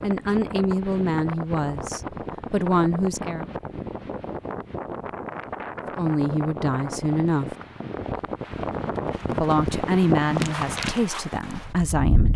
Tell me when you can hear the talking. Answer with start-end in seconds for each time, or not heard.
0.0-3.5, 6.0-7.5, 9.3-12.3.